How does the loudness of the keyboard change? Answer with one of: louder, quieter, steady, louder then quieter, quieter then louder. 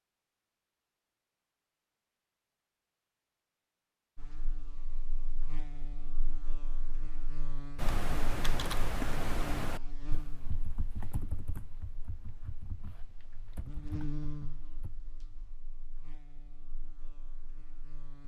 quieter.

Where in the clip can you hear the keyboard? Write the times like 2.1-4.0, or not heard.
7.8-14.9.